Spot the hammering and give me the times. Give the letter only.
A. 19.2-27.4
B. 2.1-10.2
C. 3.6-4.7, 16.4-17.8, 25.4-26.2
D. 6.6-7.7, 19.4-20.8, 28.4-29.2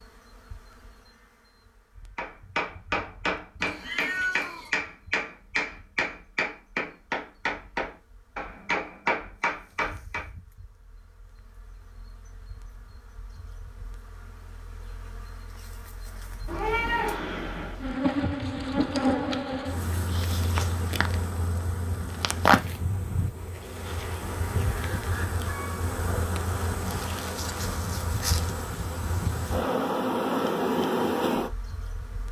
B.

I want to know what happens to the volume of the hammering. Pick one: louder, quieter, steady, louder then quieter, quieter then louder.
steady.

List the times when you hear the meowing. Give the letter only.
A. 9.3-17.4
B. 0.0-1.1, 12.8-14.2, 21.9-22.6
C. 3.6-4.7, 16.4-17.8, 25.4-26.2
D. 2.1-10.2
C.